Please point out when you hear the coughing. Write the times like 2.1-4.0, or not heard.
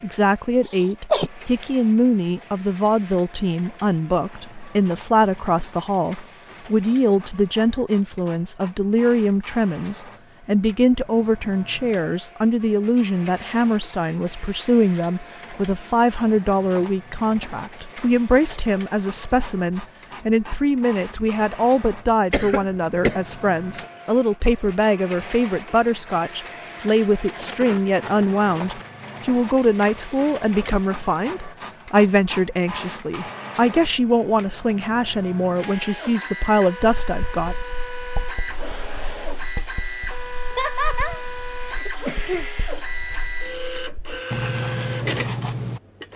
0.7-1.3, 22.3-23.2, 40.5-42.5.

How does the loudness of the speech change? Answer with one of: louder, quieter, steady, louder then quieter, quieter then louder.
steady.